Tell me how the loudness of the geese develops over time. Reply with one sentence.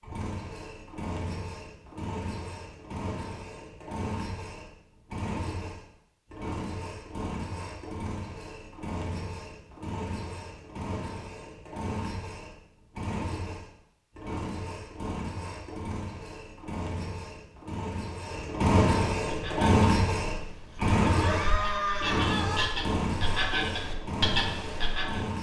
The loudness of the geese goes up.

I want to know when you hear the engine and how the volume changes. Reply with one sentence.
You can hear the engine from 0.0 to 25.3 s, getting louder.